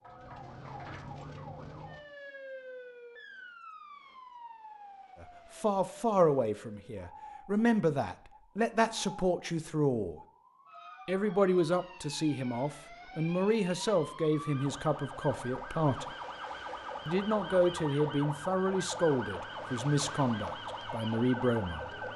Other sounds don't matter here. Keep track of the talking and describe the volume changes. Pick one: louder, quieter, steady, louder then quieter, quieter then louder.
steady.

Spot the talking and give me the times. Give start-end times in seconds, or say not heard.
5.2-10.2, 11.1-16.1, 17.1-21.9.